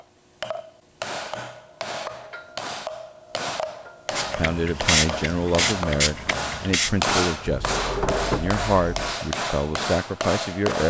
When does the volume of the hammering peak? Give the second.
7 s.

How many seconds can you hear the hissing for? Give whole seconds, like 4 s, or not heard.
4 s.